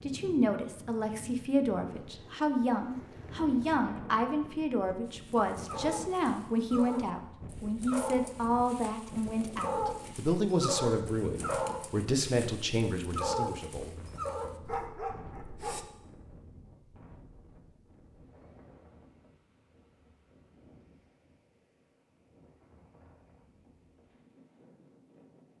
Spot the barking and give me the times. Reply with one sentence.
You can hear the barking from 5.0 to 15.8 s.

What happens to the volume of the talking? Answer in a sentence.
The loudness of the talking stays about the same.